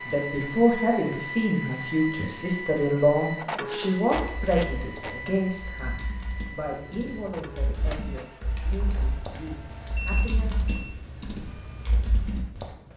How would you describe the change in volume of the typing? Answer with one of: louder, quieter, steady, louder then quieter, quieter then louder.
louder.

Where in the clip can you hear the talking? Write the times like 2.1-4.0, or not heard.
0.1-10.7.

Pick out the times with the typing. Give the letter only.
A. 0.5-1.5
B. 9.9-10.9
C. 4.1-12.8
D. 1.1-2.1
C.